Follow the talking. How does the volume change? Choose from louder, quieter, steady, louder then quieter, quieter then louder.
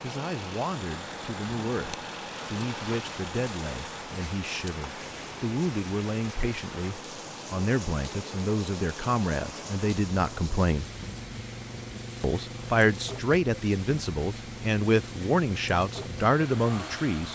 louder.